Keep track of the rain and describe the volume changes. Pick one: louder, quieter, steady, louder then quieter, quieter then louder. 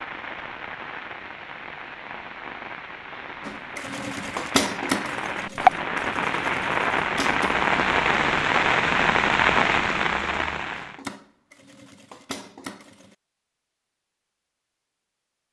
louder.